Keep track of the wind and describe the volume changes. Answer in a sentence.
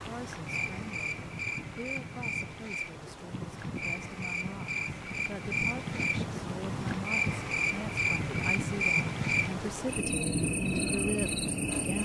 The loudness of the wind goes up.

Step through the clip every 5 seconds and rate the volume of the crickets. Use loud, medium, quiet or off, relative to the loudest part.
medium, loud, loud.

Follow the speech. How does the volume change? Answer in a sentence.
The loudness of the speech goes up.